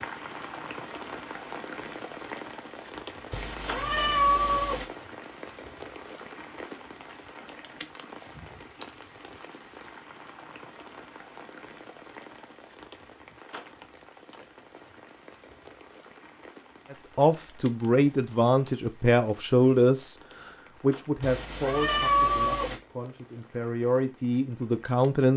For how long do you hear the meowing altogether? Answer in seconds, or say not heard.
3 s.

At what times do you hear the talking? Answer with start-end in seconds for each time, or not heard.
16.9-25.3.